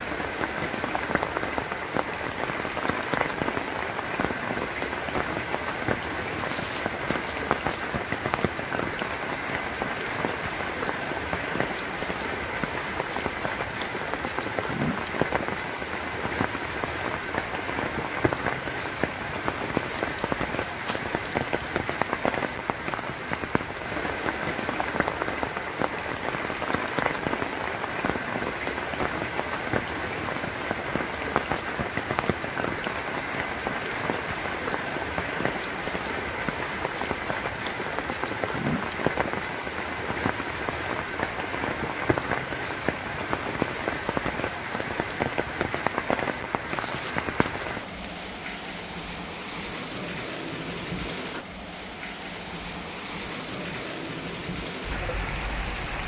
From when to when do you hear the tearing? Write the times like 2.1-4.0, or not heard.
6.3-8.0, 19.9-21.7, 46.6-48.1.